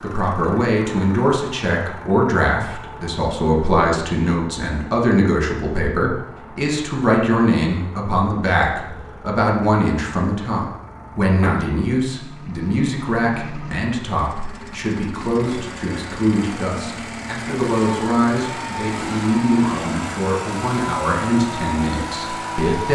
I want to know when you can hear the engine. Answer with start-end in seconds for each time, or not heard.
0.0-22.8.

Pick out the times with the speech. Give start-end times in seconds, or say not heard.
0.0-22.8.